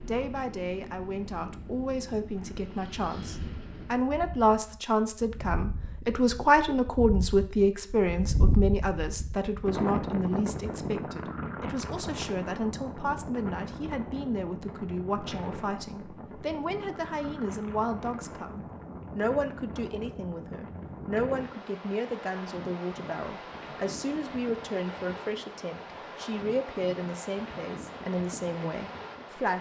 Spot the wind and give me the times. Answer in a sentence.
You can hear the wind from 0.0 to 29.5 s.